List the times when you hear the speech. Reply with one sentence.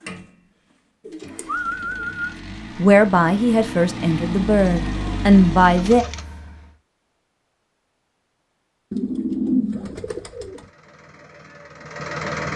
The speech can be heard from 2.8 to 6.0 s.